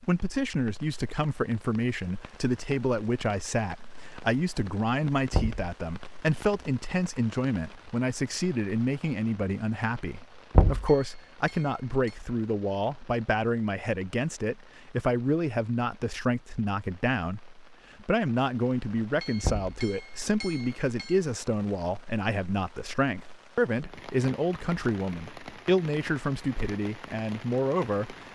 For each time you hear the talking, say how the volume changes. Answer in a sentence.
You can hear the talking from 0.0 to 28.1 s, at a steady volume.